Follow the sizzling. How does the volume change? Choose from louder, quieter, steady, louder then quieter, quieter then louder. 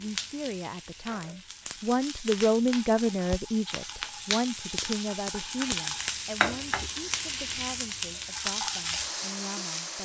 louder.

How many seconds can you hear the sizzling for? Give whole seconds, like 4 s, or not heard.
10 s.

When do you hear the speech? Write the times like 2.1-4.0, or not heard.
0.0-10.0.